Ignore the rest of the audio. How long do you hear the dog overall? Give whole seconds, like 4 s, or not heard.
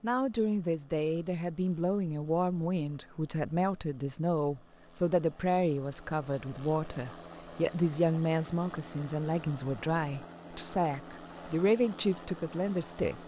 not heard.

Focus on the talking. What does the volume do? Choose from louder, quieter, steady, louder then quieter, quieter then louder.
steady.